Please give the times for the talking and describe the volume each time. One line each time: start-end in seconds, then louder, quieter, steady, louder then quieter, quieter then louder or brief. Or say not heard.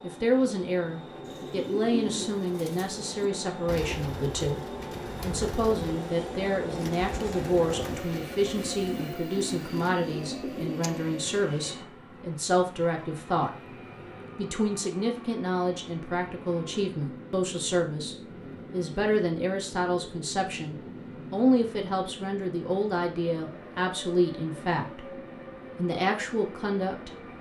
0.0-13.5 steady
14.3-27.3 steady.